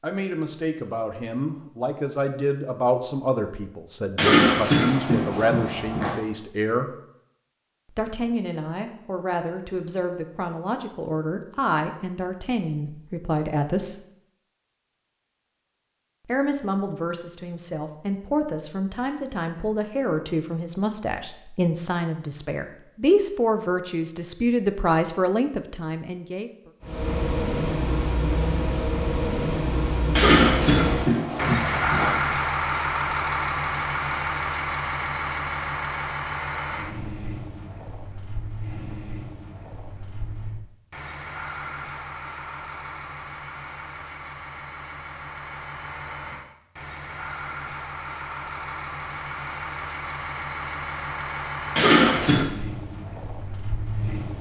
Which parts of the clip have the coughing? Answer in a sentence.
You can hear the coughing from 4.2 to 6.2 s, from 30.1 to 32.1 s and from 51.8 to 52.5 s.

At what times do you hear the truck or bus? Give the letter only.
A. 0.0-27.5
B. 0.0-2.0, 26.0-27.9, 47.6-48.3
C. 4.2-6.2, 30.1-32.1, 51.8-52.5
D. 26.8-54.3
D.